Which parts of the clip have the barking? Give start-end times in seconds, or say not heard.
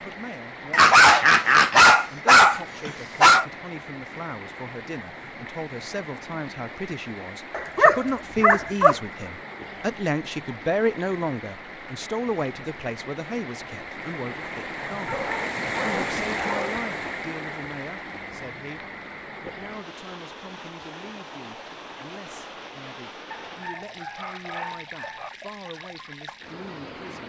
0.7-3.5, 7.5-8.9, 15.1-16.9, 23.3-25.3.